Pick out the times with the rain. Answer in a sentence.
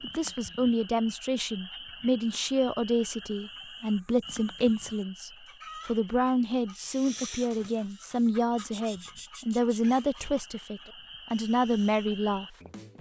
The rain can't be heard in this clip.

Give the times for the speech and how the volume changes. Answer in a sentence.
The speech can be heard from 0.0 to 12.9 s, at a steady volume.